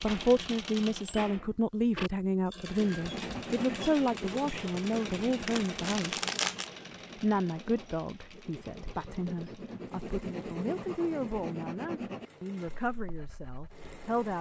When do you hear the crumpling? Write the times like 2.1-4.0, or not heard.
5.5-6.7.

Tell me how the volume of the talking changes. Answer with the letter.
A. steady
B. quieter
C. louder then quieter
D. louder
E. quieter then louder
B.